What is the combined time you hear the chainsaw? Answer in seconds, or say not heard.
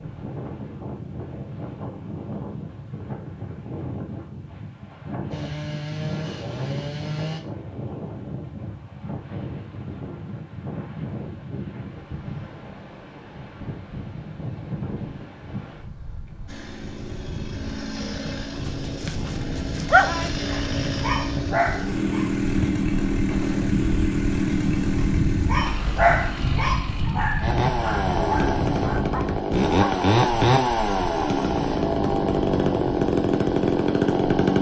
20 s.